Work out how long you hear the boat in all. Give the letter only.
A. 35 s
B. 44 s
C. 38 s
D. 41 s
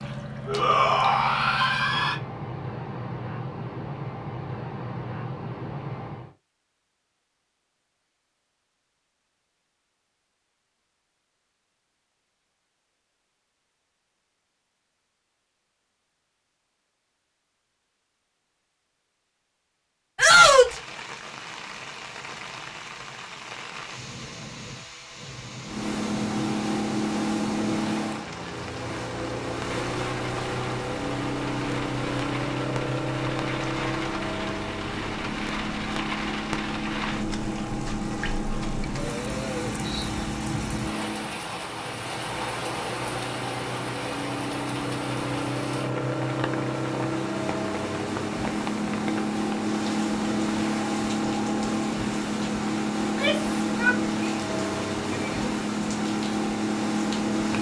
C.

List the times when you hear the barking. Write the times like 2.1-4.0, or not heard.
not heard.